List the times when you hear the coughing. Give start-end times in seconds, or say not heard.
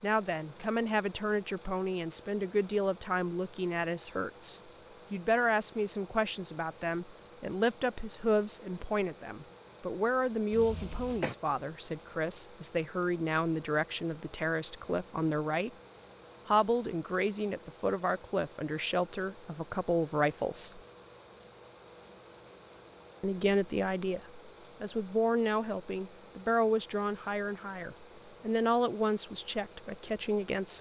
10.5-11.3.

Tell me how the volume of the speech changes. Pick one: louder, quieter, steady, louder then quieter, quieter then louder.
steady.